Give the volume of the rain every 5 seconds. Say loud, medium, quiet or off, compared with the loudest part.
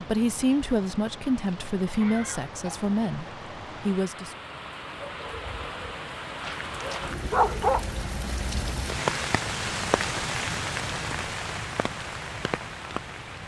medium, loud, loud.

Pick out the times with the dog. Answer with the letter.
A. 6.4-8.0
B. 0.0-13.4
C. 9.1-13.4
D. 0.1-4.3
A.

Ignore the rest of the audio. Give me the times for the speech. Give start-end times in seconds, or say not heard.
0.1-4.3.